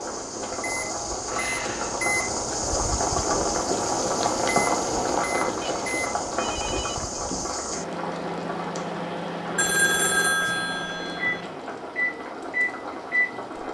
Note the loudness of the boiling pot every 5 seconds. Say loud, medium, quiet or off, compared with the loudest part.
loud, loud, medium.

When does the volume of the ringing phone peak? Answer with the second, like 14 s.
10 s.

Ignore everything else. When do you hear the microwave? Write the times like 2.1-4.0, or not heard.
0.0-13.6.